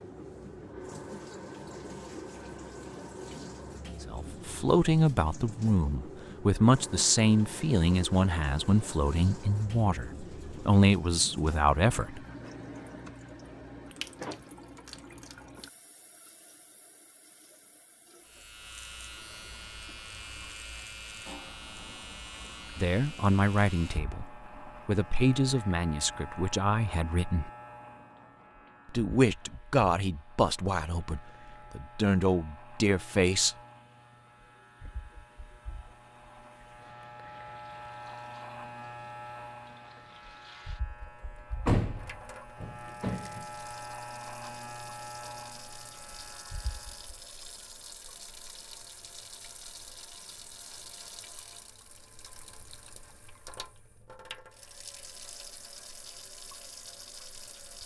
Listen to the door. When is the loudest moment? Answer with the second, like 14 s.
42 s.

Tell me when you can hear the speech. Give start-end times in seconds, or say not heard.
4.0-12.2, 22.7-27.5, 28.9-33.5.